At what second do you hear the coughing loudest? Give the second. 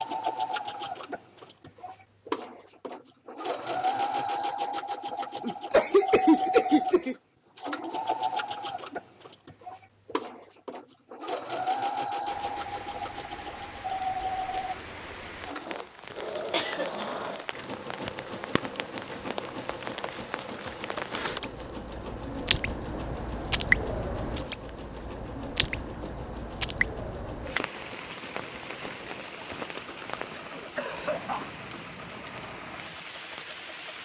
6 s.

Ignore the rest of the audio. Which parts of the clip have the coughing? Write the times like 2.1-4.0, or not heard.
5.4-7.2, 16.5-17.1, 30.3-31.4.